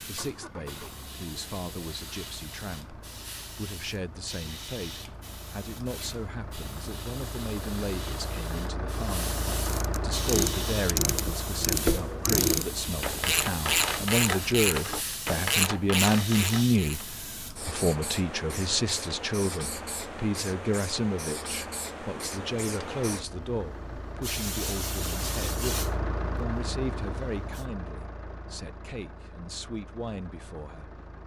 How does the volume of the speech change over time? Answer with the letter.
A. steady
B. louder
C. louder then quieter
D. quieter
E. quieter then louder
C.